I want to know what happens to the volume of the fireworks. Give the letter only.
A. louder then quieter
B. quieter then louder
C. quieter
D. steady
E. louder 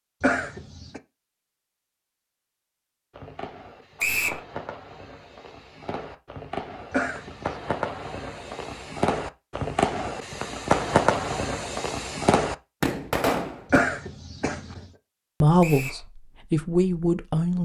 E.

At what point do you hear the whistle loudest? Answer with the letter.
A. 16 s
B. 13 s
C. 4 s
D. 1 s
C.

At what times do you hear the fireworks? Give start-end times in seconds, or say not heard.
3.1-13.8.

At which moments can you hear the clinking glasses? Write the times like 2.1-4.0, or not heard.
not heard.